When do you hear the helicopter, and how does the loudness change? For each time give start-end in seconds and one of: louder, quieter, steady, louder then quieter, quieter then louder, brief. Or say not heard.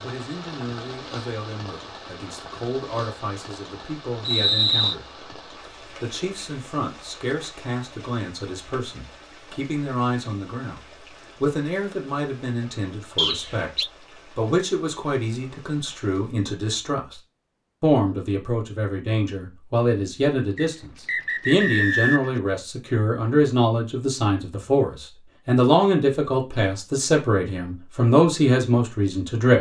not heard.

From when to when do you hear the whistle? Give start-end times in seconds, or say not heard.
4.2-5.0, 13.2-13.9, 20.6-22.4.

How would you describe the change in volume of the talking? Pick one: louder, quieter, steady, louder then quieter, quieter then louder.
louder.